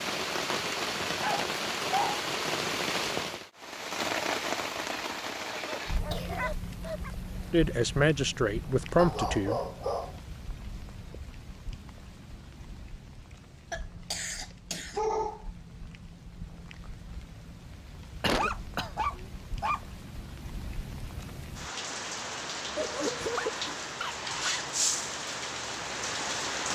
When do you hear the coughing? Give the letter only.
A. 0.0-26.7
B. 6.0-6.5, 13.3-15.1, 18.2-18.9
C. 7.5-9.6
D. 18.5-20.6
B.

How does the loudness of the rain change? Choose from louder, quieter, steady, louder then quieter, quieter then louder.
quieter then louder.